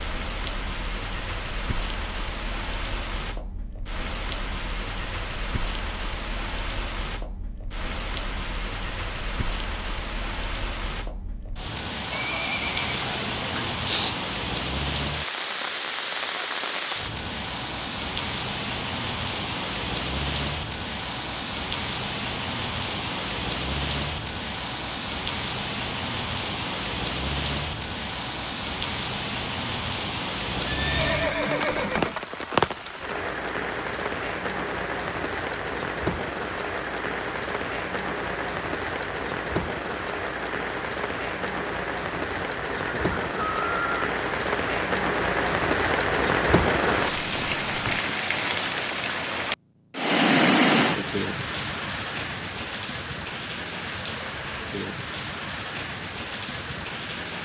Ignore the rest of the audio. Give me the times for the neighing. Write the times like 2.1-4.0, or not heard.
12.1-14.1, 30.5-32.1, 42.1-44.0.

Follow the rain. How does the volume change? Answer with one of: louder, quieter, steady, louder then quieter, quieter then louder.
louder.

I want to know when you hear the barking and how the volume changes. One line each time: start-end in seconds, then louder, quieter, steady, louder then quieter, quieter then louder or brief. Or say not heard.
not heard.